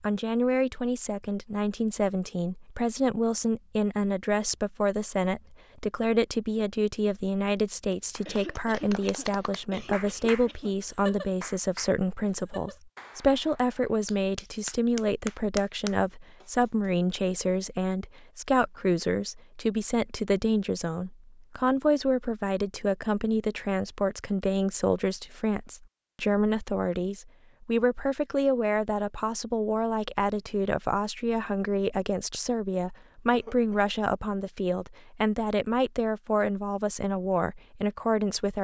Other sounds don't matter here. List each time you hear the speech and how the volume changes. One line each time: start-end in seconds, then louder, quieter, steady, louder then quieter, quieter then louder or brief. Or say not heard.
0.0-38.6 steady.